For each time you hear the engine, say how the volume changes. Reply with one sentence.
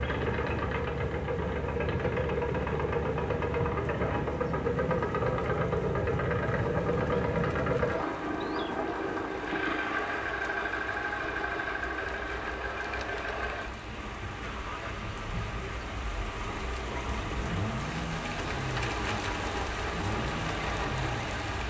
The engine can be heard from 0.0 to 21.4 s, getting quieter.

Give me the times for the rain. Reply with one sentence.
You can hear the rain from 0.0 to 21.6 s.